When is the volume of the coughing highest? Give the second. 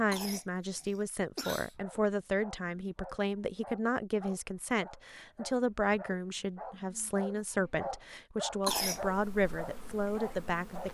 9 s.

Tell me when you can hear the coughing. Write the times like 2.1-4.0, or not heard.
0.1-1.8, 8.6-9.0.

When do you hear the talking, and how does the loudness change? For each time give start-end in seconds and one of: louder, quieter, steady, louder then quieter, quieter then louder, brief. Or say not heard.
0.0-10.8 steady.